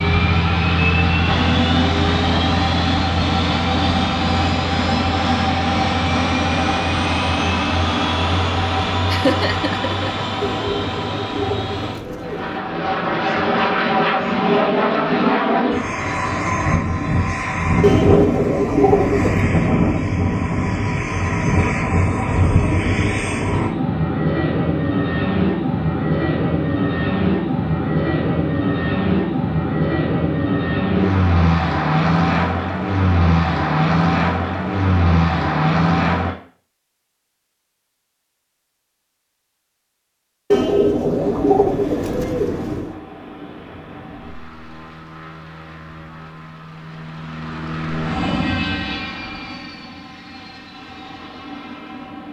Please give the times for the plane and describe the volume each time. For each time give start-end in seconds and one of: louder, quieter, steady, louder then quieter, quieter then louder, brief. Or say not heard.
0.0-36.4 steady
41.1-52.2 louder then quieter.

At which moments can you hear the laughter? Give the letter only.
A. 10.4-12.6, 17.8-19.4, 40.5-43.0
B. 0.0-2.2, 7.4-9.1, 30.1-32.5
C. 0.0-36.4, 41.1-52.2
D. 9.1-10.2
D.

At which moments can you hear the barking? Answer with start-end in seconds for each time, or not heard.
not heard.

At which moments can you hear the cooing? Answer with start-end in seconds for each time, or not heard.
10.4-12.6, 17.8-19.4, 40.5-43.0.